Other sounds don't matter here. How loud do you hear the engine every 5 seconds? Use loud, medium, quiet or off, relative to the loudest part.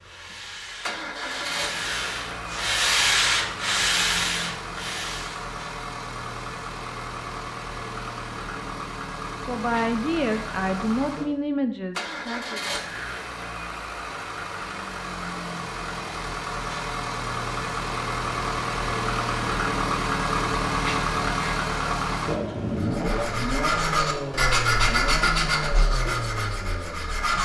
medium, medium, medium, loud, loud, medium.